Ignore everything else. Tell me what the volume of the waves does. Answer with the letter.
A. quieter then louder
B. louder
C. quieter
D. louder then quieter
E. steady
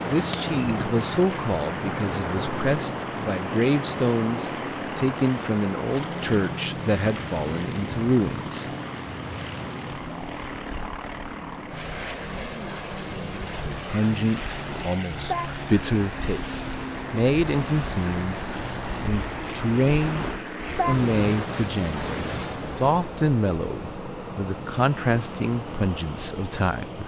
A.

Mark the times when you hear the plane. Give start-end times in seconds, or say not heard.
0.0-27.0.